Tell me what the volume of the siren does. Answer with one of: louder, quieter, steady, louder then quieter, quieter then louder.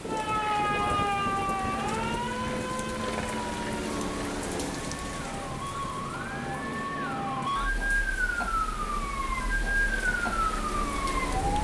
quieter then louder.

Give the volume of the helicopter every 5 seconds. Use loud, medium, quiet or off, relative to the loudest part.
loud, medium, loud.